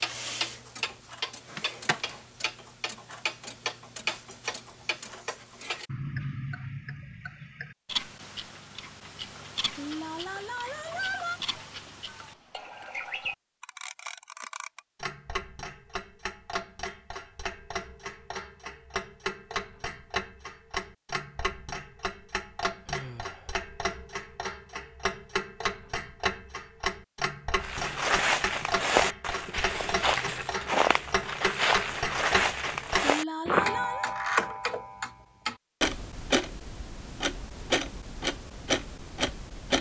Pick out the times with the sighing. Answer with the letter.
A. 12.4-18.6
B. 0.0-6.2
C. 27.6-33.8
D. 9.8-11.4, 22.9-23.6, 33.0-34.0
D.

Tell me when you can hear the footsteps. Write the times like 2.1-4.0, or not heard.
27.6-33.8.